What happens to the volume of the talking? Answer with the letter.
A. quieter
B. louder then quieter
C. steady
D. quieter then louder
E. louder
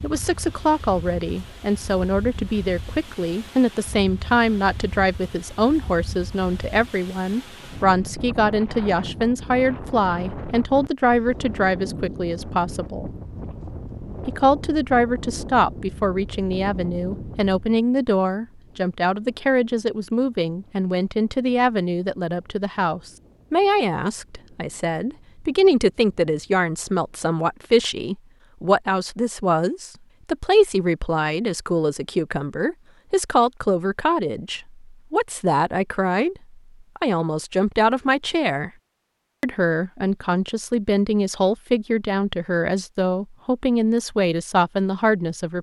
C.